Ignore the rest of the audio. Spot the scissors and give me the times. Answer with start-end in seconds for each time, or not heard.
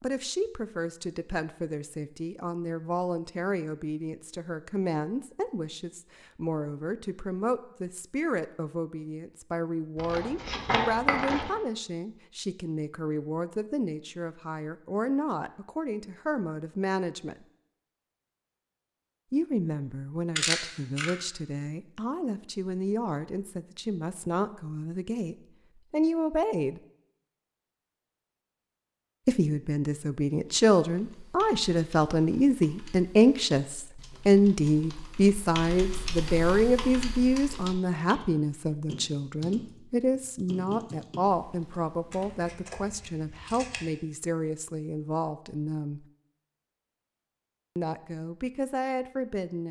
9.9-11.5, 20.4-21.1, 42.1-43.9.